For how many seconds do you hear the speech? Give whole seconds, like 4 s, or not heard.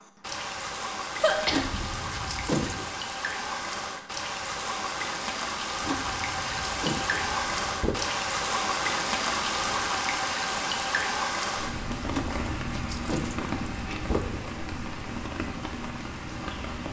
not heard.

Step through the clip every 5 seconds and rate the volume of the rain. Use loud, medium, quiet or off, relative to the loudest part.
medium, loud, loud, medium.